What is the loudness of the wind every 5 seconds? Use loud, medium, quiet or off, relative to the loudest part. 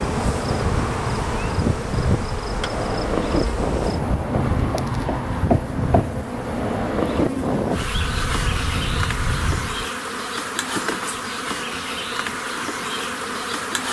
loud, loud, off.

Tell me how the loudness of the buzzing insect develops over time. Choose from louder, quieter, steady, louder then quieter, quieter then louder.
steady.